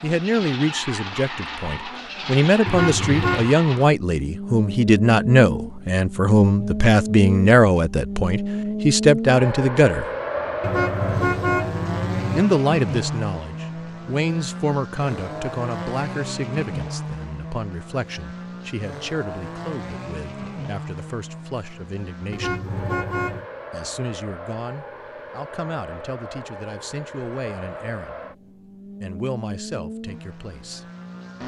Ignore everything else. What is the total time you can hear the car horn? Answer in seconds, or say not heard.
4 s.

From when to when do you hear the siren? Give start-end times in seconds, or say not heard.
not heard.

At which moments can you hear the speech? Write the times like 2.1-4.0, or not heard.
0.0-10.1, 12.3-22.6, 23.7-28.2, 29.0-30.9.